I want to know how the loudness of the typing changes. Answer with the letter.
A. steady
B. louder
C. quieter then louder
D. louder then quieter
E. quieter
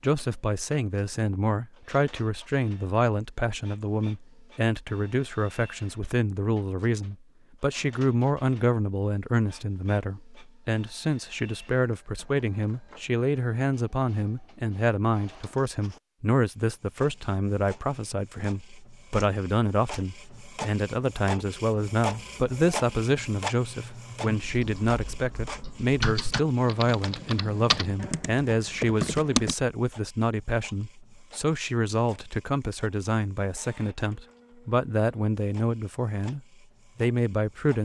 B.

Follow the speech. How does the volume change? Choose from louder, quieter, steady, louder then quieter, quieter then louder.
steady.